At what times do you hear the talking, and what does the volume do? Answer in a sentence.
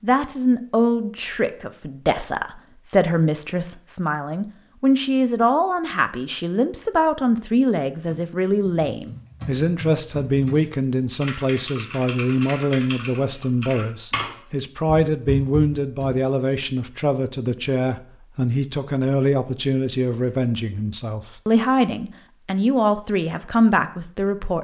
You can hear the talking from 0.0 to 24.5 s, at a steady volume.